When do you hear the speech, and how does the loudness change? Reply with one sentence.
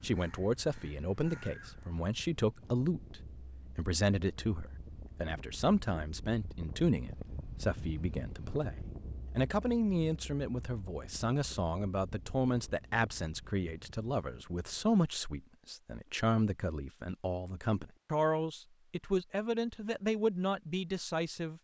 You can hear the speech from 0.0 to 8.8 s, at a steady volume; and from 9.3 to 21.5 s, at a steady volume.